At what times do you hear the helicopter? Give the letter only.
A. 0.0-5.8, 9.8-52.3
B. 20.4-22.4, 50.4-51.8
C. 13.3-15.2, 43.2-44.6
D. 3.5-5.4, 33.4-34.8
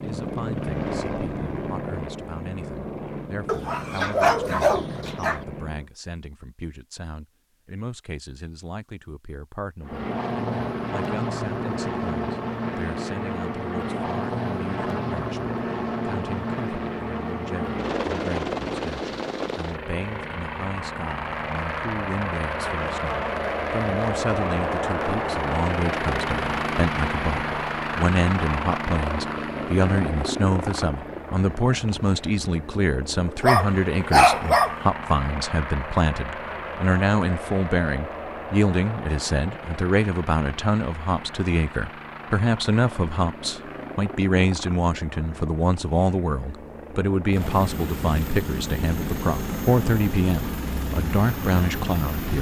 A.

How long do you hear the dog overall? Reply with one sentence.
The dog can be heard for 3 seconds in total.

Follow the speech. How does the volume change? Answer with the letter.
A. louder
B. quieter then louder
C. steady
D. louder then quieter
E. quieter
A.